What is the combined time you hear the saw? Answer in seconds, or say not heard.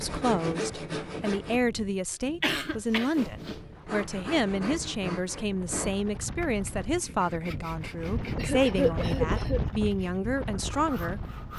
10 s.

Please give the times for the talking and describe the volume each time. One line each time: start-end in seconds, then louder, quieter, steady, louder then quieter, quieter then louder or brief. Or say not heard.
0.0-11.2 steady.